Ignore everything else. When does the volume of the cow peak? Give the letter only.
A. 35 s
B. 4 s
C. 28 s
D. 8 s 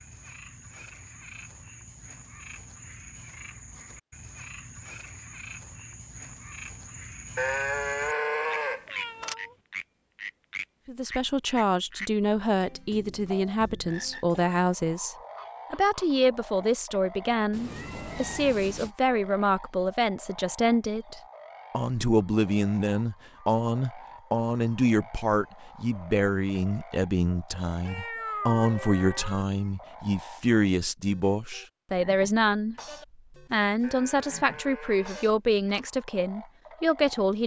D.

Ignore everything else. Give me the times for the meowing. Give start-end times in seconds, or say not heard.
8.8-9.6, 17.5-18.9, 27.9-29.4.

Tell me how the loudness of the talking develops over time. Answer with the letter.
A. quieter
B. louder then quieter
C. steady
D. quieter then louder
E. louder
C.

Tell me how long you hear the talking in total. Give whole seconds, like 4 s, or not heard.
26 s.